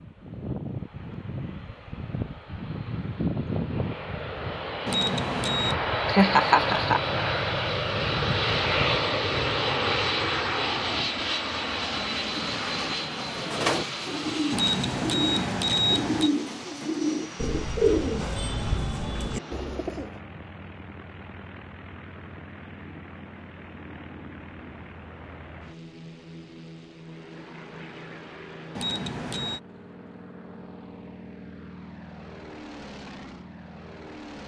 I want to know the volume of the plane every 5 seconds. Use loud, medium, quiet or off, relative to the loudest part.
medium, loud, loud, quiet, quiet, quiet, quiet.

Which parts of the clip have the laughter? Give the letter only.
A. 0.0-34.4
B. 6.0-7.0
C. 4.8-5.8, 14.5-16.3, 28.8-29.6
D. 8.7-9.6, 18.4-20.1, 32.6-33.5
B.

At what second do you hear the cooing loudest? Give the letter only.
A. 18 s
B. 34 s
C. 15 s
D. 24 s
A.